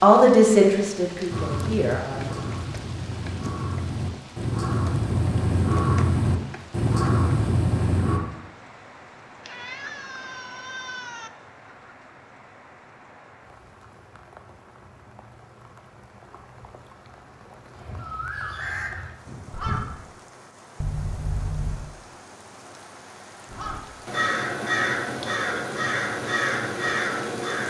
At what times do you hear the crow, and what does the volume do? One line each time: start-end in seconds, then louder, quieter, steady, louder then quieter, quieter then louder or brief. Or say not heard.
1.2-8.2 louder
17.7-19.9 brief
23.4-27.6 steady.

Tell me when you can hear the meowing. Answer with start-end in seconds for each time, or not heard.
9.4-11.3, 20.8-21.9.